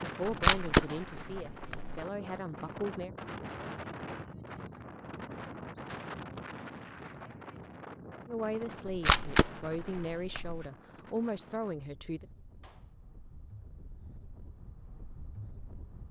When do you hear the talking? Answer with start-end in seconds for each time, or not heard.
0.0-3.1, 8.2-12.2.